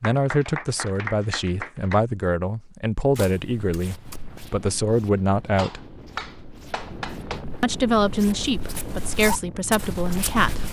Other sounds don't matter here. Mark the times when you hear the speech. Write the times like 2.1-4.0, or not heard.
0.0-5.8, 7.6-10.6.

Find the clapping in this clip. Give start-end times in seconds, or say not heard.
0.0-2.0, 5.5-7.5.